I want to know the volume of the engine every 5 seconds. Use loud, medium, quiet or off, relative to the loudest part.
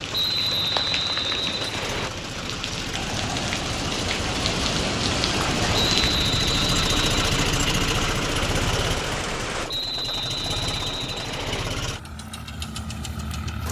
medium, loud, medium.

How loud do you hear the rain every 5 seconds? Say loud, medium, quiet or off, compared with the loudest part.
loud, loud, off.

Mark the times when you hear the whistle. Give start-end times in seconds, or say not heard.
0.1-2.1, 5.8-7.4, 9.7-11.7.